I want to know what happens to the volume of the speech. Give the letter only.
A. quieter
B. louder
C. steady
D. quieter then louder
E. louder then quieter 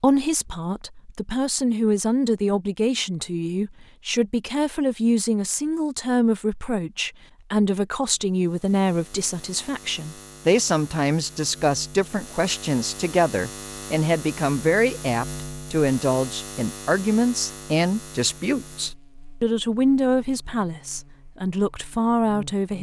C.